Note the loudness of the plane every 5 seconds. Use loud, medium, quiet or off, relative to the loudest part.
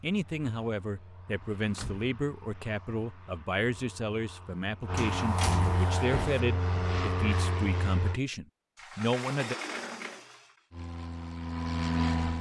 quiet, loud, loud.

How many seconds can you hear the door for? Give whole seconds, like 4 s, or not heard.
4 s.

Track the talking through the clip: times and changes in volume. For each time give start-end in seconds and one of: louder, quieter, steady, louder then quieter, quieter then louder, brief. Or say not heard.
0.0-9.6 steady.